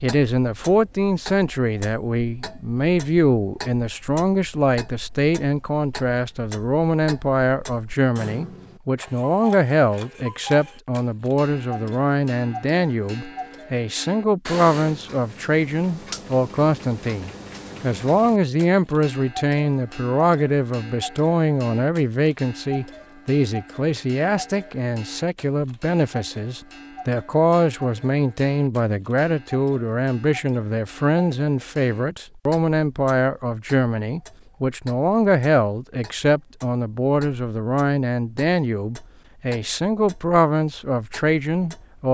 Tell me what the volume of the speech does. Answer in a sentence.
The volume of the speech stays about the same.